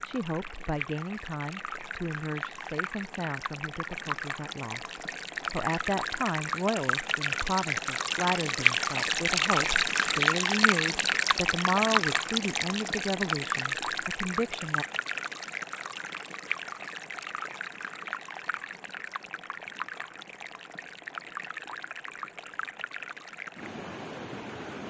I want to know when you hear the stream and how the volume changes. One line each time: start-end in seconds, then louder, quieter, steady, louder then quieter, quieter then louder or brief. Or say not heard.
0.0-24.8 louder then quieter.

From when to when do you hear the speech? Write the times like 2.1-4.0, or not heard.
0.0-14.8.